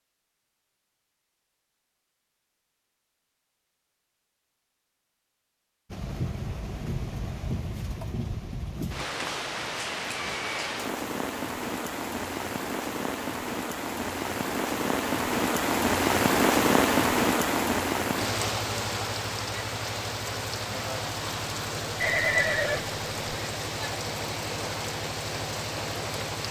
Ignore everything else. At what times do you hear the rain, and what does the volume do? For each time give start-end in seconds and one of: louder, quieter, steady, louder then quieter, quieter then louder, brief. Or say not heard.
5.9-26.4 louder then quieter.